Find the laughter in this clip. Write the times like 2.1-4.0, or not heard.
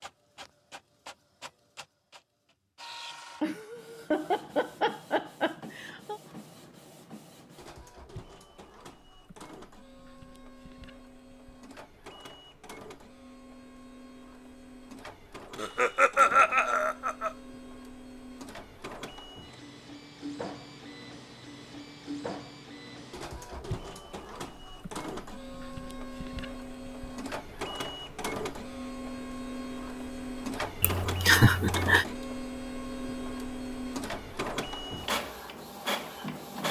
3.4-6.2, 15.6-17.3, 30.8-32.0.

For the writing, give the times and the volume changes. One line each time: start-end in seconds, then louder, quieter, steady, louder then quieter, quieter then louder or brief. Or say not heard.
not heard.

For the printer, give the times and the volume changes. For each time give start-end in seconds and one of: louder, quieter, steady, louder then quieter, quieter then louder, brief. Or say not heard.
0.0-36.6 louder.